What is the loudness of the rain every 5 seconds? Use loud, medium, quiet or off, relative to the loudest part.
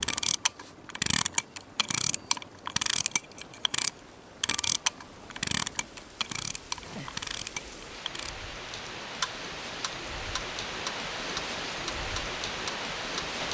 quiet, medium, loud.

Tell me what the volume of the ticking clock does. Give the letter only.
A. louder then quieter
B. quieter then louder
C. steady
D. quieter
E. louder
D.